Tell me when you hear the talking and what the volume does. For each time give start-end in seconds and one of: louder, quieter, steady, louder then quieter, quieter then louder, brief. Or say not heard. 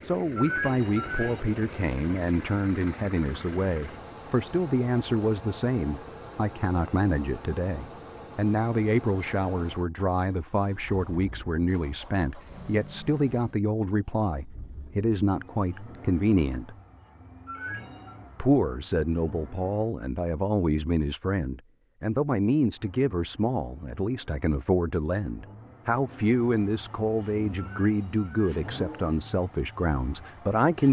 0.0-16.8 steady
18.4-30.8 steady.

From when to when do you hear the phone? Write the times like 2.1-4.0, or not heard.
0.3-1.4, 17.4-18.1, 27.6-28.6.